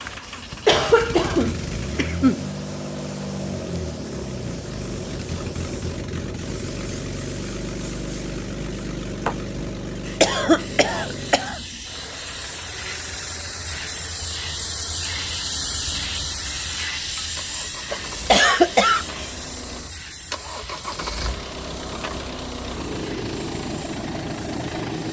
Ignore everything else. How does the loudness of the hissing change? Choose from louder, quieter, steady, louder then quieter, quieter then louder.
louder then quieter.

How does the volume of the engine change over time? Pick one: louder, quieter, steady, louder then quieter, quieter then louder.
quieter then louder.